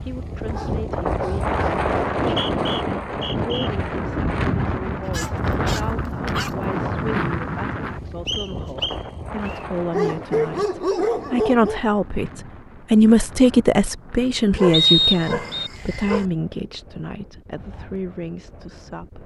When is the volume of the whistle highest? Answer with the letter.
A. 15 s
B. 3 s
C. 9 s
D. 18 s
A.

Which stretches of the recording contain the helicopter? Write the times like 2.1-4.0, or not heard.
not heard.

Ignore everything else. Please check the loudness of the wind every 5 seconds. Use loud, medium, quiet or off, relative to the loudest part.
loud, loud, quiet, quiet.